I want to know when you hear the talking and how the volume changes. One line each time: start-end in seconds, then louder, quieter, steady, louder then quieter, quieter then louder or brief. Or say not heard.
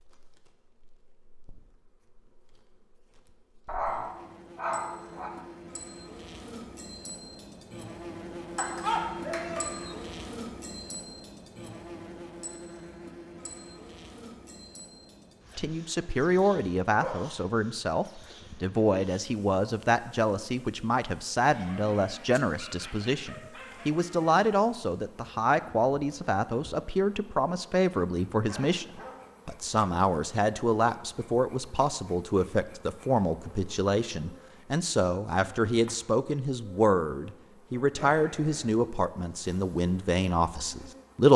15.6-41.3 steady.